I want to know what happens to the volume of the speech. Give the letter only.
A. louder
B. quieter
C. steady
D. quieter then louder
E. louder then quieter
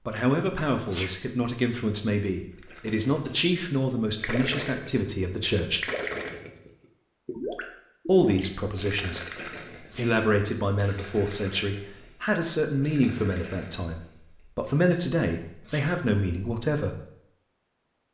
C.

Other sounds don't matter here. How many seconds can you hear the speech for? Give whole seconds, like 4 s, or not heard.
15 s.